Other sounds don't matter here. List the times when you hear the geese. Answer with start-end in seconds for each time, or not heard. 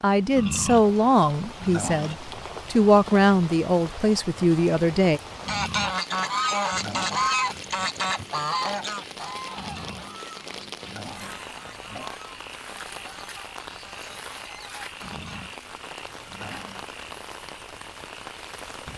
5.5-15.5.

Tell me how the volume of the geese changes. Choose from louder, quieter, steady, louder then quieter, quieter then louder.
quieter.